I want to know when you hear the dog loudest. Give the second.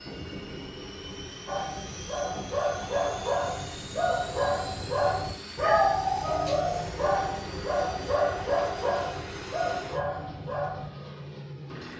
6 s.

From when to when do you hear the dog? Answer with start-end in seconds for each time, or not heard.
1.4-10.9.